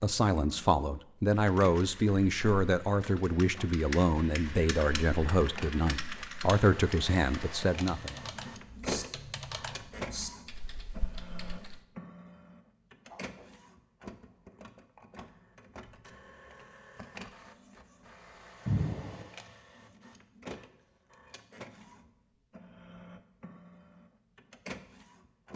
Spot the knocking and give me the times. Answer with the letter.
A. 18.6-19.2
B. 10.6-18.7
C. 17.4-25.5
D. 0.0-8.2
A.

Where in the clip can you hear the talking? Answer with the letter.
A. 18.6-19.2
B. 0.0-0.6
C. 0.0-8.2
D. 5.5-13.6
C.